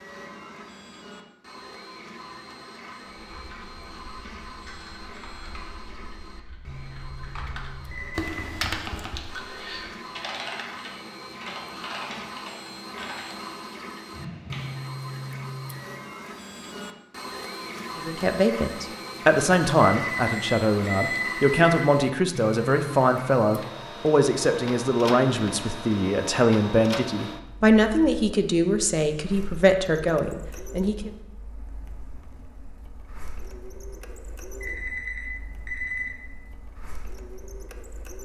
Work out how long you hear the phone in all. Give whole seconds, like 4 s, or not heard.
4 s.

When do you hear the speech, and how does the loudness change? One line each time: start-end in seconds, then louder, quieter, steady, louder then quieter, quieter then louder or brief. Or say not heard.
17.9-31.1 steady.